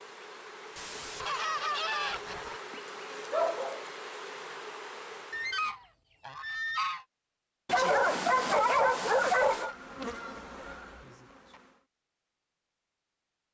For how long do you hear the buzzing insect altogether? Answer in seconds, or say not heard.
8 s.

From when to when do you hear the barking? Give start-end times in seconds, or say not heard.
3.3-3.9, 7.7-9.7.